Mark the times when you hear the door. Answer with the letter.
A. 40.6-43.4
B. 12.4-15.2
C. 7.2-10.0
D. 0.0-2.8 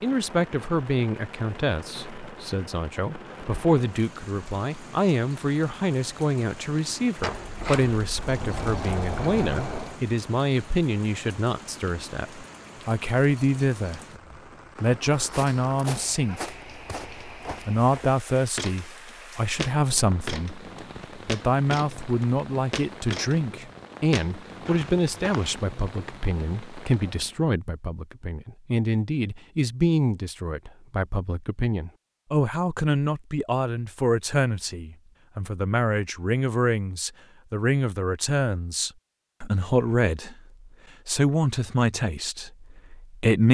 C.